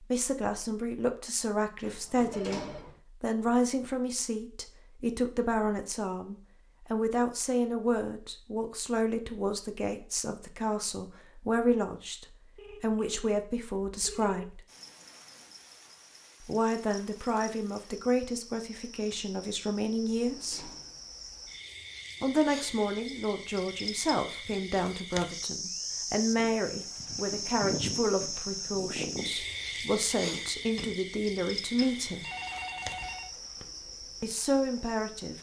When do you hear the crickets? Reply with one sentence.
You can hear the crickets from 14.7 to 35.3 s.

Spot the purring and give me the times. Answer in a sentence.
You can't hear the purring here.